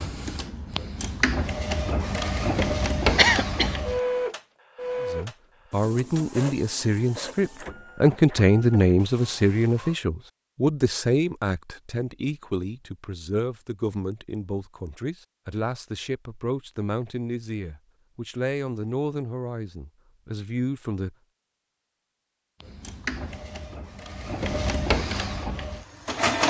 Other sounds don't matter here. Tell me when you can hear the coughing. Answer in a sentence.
You can hear the coughing from 3.1 to 3.8 s.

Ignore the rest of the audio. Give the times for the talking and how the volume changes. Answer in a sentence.
You can hear the talking from 5.0 to 21.1 s, getting quieter.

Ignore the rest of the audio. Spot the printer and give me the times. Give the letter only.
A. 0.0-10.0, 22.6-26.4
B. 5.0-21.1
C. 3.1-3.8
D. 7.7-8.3
A.